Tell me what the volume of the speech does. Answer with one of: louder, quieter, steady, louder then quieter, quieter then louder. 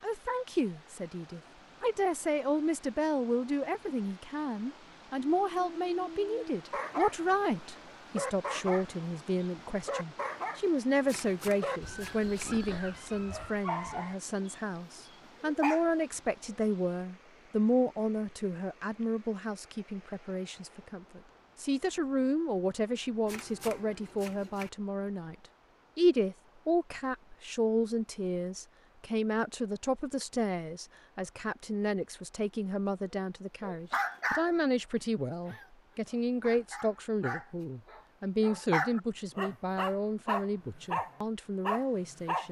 steady.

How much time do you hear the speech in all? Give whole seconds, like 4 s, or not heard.
42 s.